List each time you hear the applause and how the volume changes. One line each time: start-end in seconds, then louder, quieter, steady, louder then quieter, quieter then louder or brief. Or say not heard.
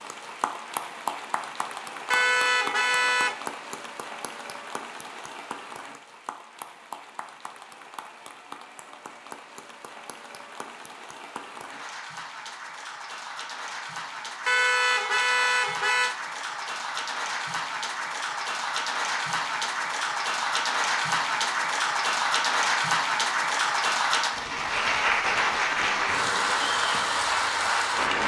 0.0-28.2 quieter then louder.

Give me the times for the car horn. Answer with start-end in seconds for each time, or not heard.
2.1-3.4, 14.4-16.1.